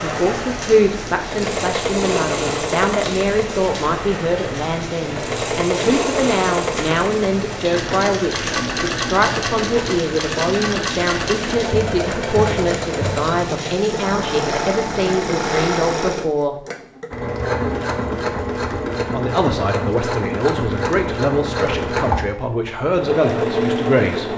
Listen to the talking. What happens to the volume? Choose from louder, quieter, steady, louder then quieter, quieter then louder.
steady.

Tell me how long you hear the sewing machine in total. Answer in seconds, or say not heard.
24 s.